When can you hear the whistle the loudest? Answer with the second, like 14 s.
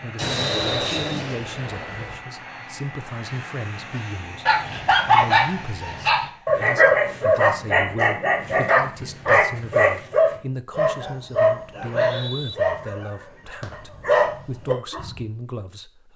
1 s.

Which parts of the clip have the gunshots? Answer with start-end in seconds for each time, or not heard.
0.1-2.1.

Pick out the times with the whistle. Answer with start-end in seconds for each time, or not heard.
0.2-1.2, 11.8-12.6.